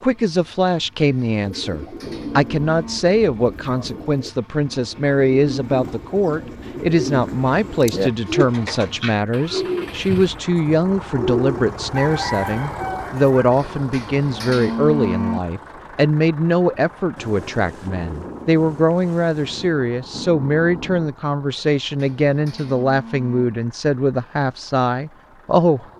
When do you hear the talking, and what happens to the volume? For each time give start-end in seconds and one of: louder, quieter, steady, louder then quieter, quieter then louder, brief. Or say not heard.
0.0-25.9 steady.